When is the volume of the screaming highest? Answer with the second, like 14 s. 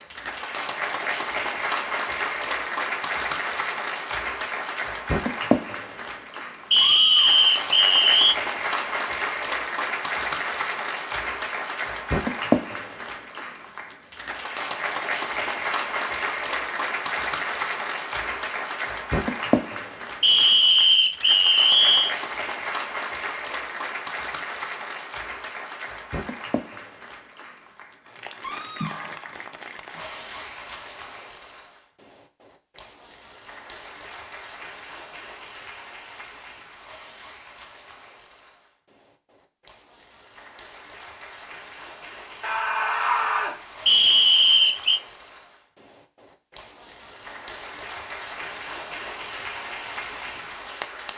43 s.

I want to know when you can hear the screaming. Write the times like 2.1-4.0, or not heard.
6.8-7.5, 28.4-29.3, 42.4-43.5.